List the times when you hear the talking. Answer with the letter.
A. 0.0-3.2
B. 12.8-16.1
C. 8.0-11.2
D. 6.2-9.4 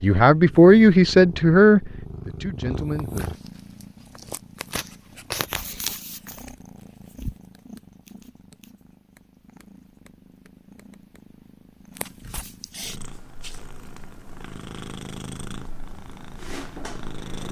A.